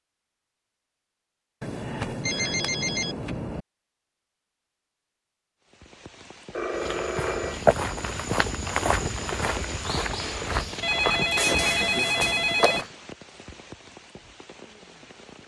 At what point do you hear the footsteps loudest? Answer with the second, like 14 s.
8 s.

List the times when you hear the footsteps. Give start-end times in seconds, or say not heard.
6.7-12.9.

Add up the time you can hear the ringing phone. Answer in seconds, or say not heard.
5 s.